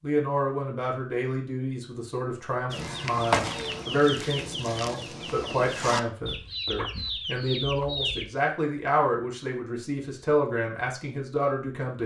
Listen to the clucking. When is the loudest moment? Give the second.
3 s.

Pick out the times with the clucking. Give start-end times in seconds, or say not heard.
2.7-8.2.